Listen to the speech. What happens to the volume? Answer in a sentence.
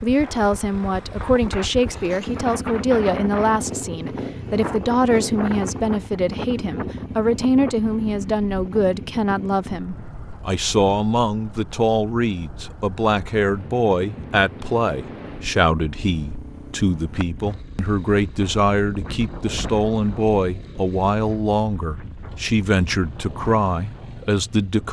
The loudness of the speech stays about the same.